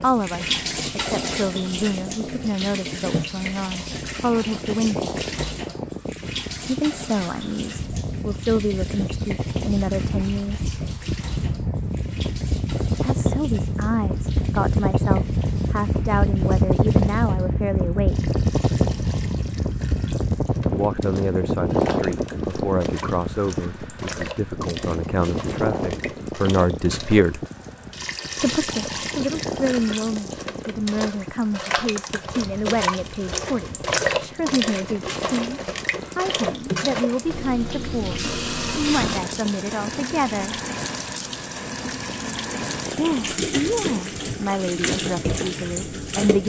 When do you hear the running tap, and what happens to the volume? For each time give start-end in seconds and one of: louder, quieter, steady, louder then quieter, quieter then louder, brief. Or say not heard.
0.0-46.4 quieter then louder.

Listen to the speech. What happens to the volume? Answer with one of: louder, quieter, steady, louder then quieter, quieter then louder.
steady.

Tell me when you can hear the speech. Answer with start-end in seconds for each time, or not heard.
0.0-5.1, 6.7-10.7, 12.8-18.2, 20.7-27.4, 28.4-40.6, 43.0-46.4.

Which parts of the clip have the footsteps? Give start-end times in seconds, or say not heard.
not heard.